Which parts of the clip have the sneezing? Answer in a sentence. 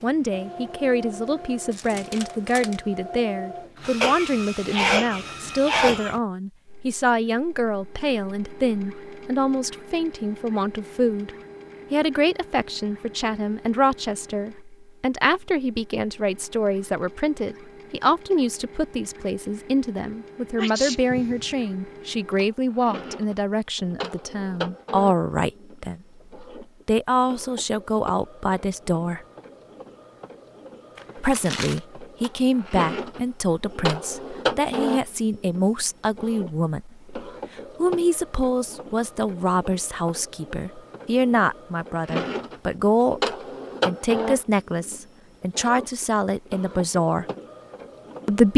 The sneezing can be heard from 4.0 to 6.2 s, from 20.6 to 21.6 s and from 45.5 to 45.9 s.